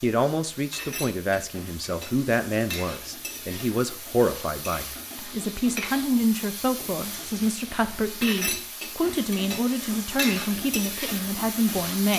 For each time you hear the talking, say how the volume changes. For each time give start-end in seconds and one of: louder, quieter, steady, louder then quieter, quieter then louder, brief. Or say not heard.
0.0-12.1 steady.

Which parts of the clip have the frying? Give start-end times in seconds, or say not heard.
0.0-12.1.